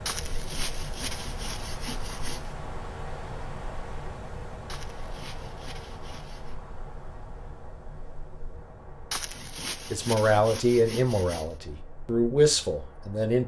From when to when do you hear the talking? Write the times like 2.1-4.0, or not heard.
9.9-13.4.